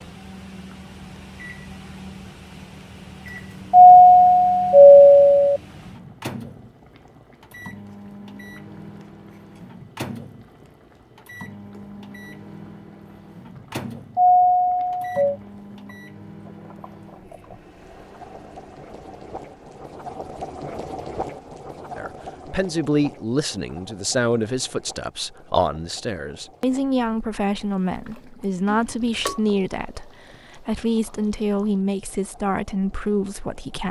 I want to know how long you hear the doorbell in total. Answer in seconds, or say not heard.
4 s.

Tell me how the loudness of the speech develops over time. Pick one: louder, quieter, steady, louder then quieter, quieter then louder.
steady.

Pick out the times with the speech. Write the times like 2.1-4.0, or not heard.
21.9-33.8.